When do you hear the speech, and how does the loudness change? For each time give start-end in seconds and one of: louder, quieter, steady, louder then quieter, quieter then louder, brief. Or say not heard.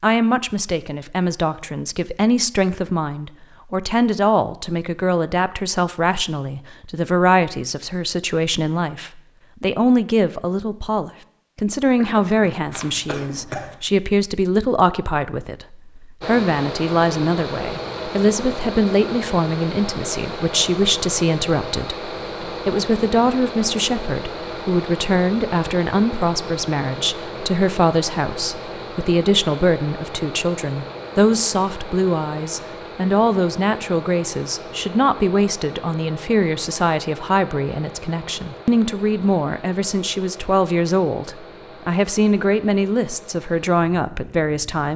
0.0-44.9 steady.